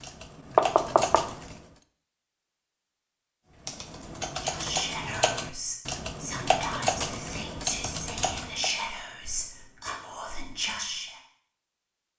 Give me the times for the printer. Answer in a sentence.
You can't hear the printer here.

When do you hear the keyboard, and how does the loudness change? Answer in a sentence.
You can hear the keyboard briefly from 0.0 to 1.6 s; and from 3.6 to 8.8 s, at a steady volume.